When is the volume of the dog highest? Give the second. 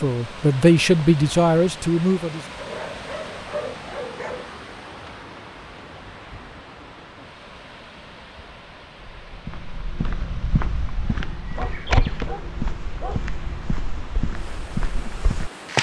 4 s.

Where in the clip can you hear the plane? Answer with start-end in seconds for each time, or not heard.
not heard.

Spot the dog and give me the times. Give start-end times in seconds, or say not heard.
2.5-4.5, 11.6-13.2.